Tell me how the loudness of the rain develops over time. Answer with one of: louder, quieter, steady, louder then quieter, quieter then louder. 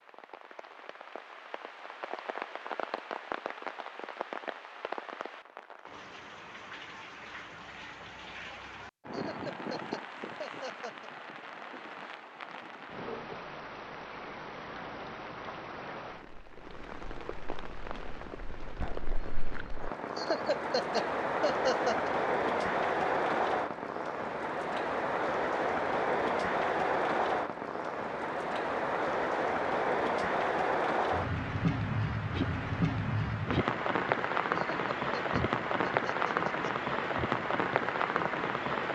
louder.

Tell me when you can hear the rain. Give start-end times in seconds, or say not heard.
0.0-38.8.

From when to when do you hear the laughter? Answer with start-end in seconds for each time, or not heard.
9.1-11.1, 20.1-22.1, 34.5-36.8.